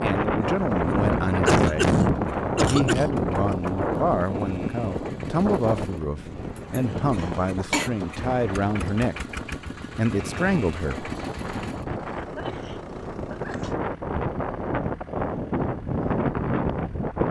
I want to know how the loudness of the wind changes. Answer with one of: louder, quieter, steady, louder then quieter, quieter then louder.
quieter then louder.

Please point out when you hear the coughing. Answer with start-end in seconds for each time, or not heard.
1.4-3.1, 6.5-7.9, 12.2-13.8.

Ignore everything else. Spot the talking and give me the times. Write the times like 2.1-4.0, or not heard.
0.0-9.2, 9.9-11.1.